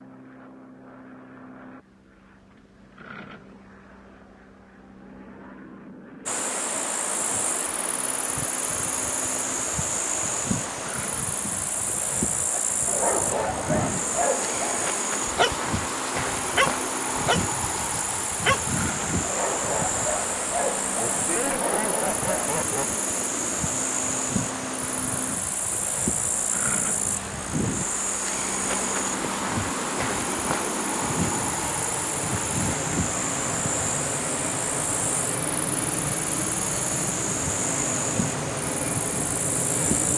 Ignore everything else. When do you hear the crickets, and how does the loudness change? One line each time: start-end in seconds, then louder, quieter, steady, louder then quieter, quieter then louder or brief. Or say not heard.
6.2-40.1 steady.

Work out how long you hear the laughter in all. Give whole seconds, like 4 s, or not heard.
2 s.